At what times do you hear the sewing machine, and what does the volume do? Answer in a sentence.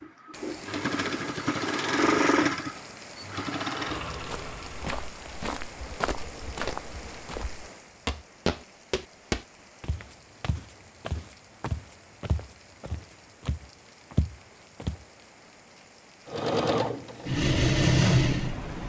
You can hear the sewing machine from 0.0 to 7.3 s, getting louder then quieter; and briefly from 16.2 to 18.8 s.